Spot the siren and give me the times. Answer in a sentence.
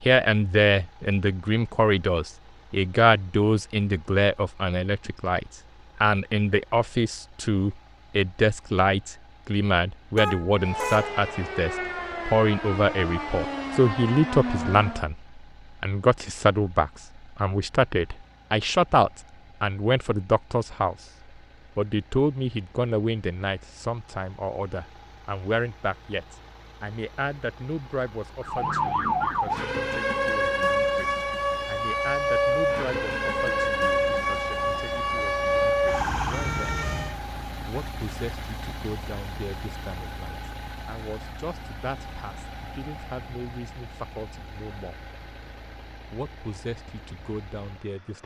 You can hear the siren from 10.5 to 15.1 s and from 28.4 to 37.1 s.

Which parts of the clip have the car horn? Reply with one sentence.
You can hear the car horn from 10.2 to 11.2 s.